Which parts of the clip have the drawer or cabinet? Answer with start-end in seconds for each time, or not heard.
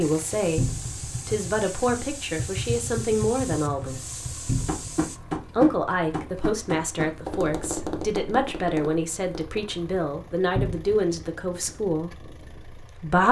0.6-1.1, 4.5-4.9, 10.6-11.0.